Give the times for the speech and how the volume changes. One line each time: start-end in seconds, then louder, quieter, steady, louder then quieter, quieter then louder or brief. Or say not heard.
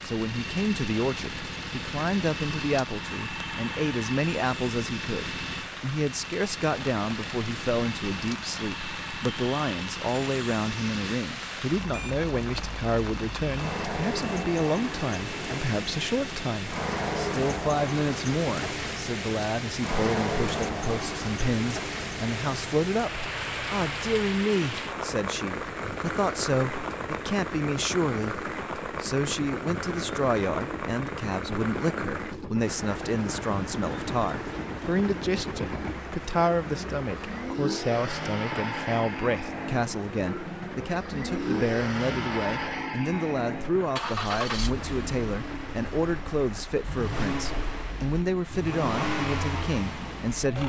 0.0-50.6 steady.